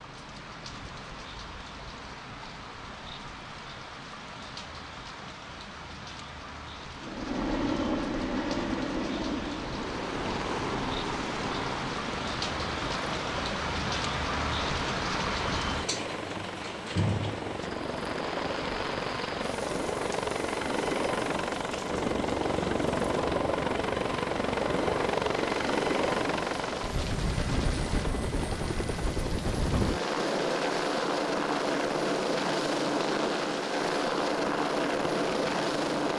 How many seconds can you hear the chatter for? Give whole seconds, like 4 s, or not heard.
not heard.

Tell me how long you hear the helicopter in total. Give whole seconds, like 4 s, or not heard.
29 s.